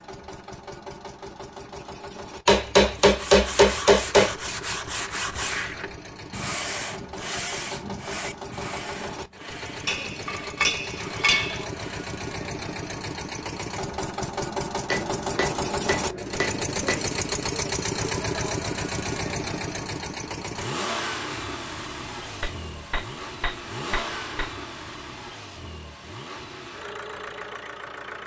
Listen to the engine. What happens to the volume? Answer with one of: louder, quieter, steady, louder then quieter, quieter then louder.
louder then quieter.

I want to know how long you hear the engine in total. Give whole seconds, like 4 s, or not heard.
28 s.